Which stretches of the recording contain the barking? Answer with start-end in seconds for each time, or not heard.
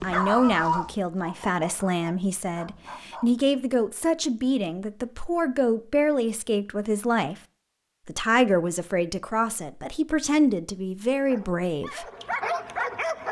0.0-3.6, 11.2-13.2.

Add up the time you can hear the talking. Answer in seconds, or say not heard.
11 s.